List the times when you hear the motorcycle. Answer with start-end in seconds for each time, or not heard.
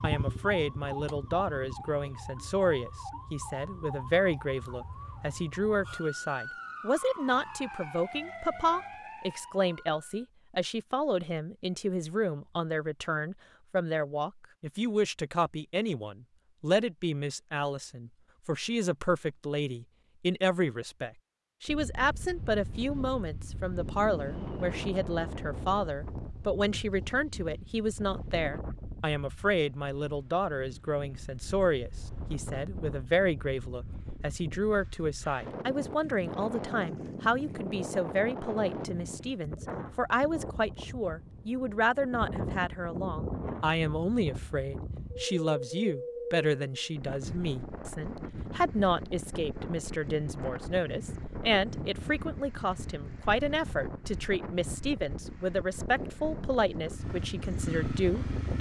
0.0-1.9, 56.8-58.5.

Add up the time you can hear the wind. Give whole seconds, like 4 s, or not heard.
37 s.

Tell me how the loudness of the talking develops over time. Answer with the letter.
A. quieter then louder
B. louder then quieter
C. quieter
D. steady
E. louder
D.